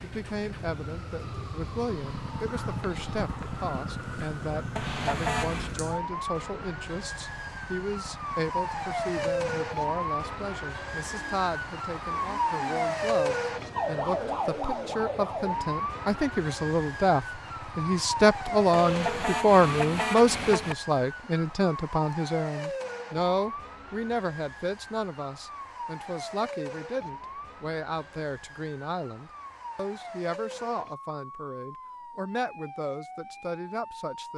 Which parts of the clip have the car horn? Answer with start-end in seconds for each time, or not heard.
4.8-5.8, 18.7-20.8.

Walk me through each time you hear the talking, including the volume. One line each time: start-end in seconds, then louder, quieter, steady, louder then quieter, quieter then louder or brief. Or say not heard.
0.0-34.3 louder then quieter.